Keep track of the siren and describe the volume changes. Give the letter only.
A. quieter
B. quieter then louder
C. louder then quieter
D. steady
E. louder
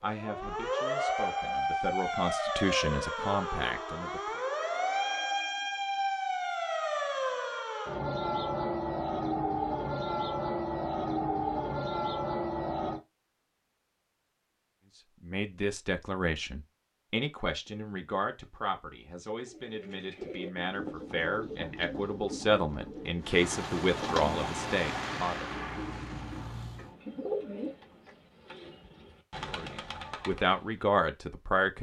D.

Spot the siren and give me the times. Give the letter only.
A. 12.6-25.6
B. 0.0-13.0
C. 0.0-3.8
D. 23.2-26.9
B.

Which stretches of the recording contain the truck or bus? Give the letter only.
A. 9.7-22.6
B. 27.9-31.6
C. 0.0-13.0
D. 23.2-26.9
D.